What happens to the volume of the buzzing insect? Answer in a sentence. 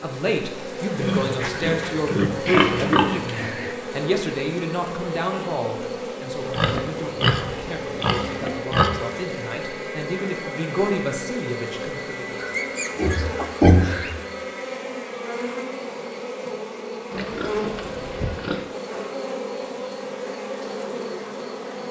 The loudness of the buzzing insect stays about the same.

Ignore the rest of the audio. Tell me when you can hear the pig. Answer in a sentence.
You can hear the pig from 1.0 to 3.8 s, from 6.5 to 9.0 s, from 12.4 to 14.2 s and from 17.1 to 18.6 s.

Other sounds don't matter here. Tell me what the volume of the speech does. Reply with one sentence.
The volume of the speech goes down, then up.